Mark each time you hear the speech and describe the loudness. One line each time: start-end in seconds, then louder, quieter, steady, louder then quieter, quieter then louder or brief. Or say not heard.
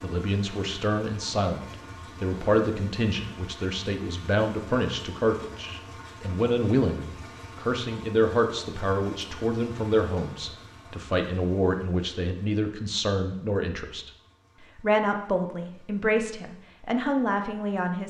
0.0-18.0 steady.